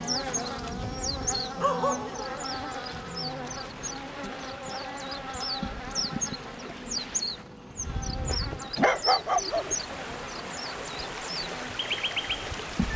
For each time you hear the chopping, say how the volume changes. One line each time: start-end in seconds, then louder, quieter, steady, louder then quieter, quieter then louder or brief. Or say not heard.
not heard.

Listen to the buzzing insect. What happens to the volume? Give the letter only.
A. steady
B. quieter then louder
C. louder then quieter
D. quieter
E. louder
D.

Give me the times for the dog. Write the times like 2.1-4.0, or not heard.
0.8-2.4, 8.8-9.7.